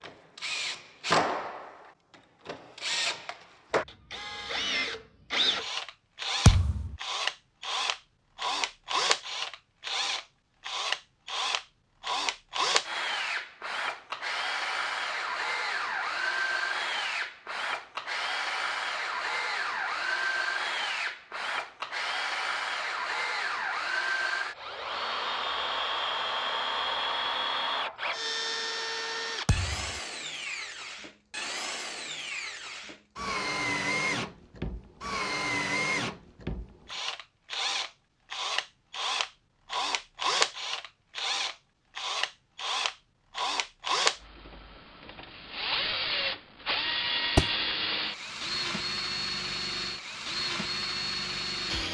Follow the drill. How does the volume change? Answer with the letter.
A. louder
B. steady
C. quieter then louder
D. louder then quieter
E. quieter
B.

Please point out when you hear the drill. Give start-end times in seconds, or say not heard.
0.0-51.8.